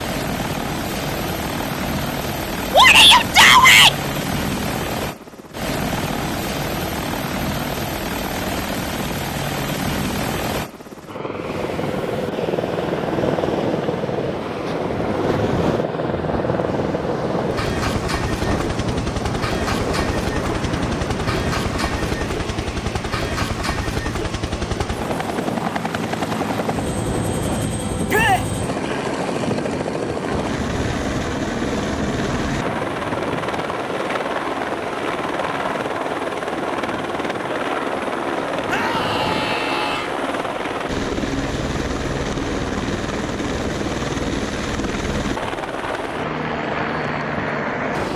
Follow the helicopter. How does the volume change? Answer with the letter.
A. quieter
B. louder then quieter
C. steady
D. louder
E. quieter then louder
C.